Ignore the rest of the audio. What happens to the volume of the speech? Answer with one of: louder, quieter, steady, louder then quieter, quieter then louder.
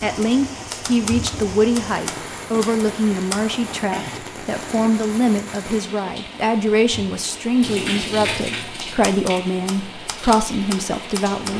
steady.